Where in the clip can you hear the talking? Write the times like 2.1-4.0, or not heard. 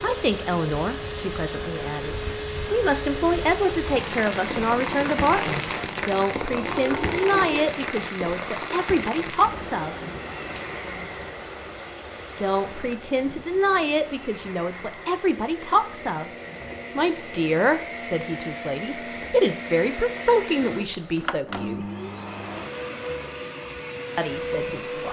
0.0-9.9, 12.3-16.3, 16.9-21.9, 24.1-25.0.